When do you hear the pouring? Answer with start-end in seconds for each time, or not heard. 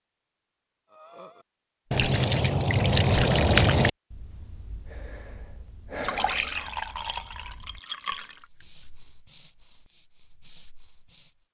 1.9-3.9, 6.0-8.4.